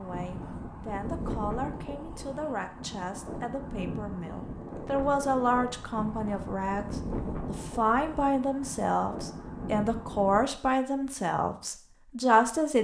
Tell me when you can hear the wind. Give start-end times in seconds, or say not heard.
0.0-10.4.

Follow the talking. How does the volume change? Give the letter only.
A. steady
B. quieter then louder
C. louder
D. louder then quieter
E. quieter
C.